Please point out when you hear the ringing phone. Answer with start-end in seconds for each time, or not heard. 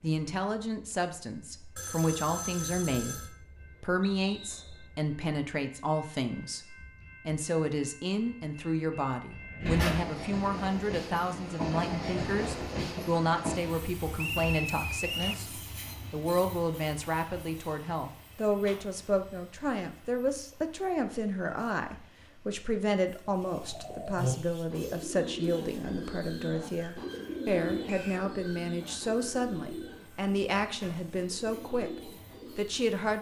1.8-3.3.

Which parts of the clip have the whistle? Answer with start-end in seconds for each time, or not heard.
4.2-4.8, 14.2-15.4, 27.9-28.3.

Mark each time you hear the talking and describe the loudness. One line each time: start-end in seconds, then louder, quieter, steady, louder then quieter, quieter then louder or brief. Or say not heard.
0.0-33.1 steady.